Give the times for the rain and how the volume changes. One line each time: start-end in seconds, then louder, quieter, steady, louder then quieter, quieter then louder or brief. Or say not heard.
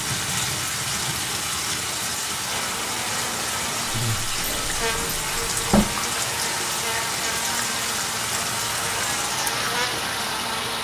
0.0-10.8 steady.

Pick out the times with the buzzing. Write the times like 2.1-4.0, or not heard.
2.5-10.8.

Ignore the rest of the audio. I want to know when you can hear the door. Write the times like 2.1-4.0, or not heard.
4.4-5.8.